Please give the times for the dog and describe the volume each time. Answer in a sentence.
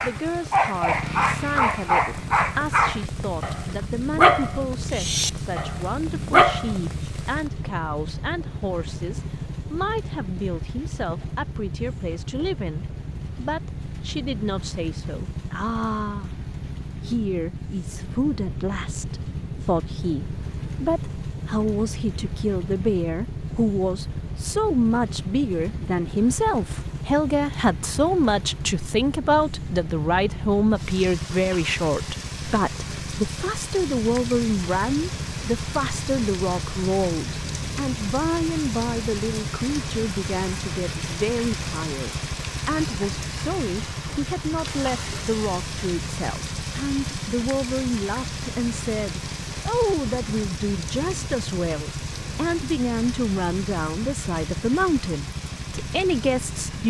The dog can be heard from 0.0 to 7.0 s, getting quieter then louder.